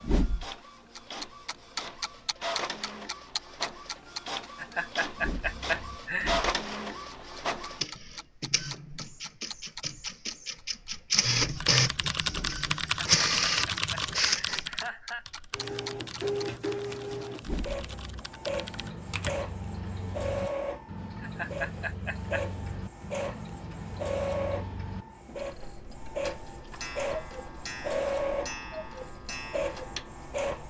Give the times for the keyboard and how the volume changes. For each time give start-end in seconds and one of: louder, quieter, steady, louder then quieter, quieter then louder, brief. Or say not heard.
11.6-19.4 quieter.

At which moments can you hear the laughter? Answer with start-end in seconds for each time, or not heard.
4.5-6.3, 12.8-15.2, 21.2-22.4.